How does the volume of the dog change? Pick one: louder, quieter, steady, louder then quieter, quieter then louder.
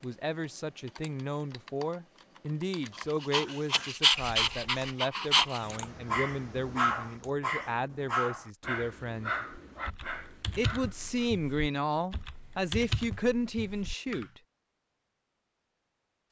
quieter.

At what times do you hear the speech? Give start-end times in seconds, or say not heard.
0.0-9.4, 10.6-14.4.